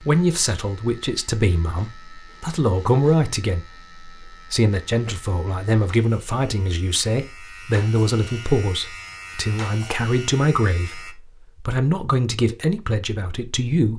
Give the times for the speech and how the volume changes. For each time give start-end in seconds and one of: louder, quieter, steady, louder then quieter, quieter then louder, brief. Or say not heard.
0.0-13.9 steady.